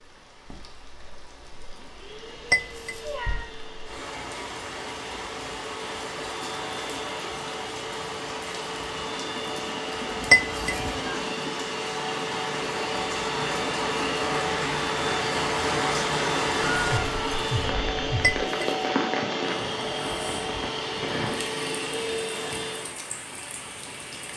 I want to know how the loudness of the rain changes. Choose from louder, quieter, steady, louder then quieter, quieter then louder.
louder then quieter.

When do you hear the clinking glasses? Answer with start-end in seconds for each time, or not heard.
2.5-3.0, 10.3-10.8, 18.2-18.8.